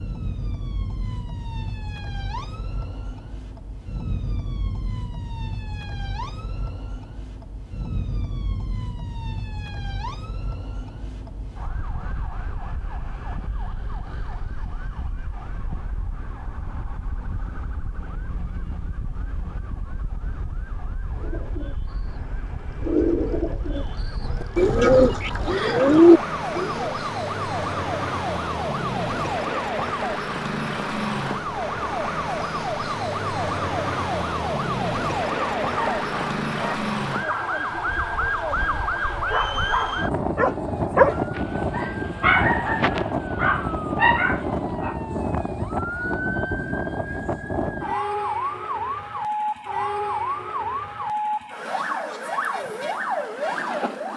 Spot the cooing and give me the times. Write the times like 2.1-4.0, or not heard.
21.2-26.9.